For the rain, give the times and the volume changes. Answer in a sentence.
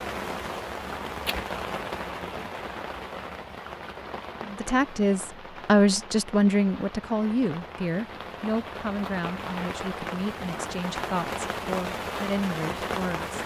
You can hear the rain from 0.0 to 13.4 s, getting quieter then louder.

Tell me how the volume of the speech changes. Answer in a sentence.
The volume of the speech goes down.